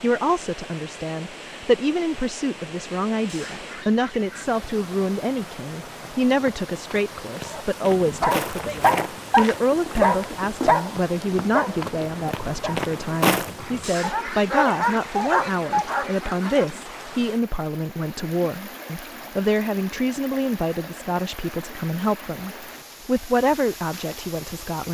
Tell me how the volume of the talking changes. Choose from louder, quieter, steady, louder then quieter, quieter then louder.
steady.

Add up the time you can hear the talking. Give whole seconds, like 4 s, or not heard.
25 s.